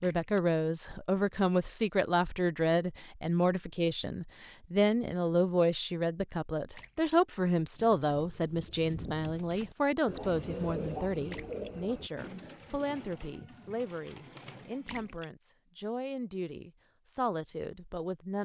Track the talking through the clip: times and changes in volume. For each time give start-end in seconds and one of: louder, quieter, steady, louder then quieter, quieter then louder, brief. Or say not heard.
0.0-18.4 quieter.